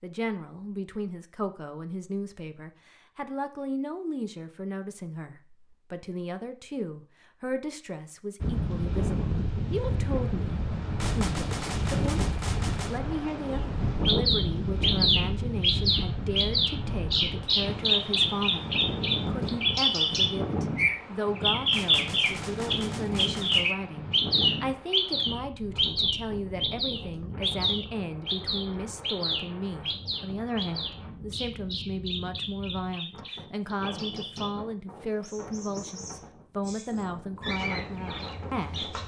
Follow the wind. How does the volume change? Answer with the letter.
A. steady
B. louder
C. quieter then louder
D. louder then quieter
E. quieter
E.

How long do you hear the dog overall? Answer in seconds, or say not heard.
not heard.